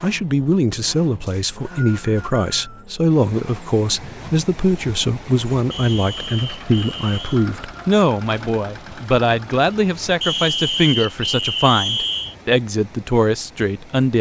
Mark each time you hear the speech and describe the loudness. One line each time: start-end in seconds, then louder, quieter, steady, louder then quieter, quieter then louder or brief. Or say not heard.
0.0-14.1 steady.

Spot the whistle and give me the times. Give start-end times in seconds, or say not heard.
1.2-2.9, 5.7-7.5, 10.2-12.3.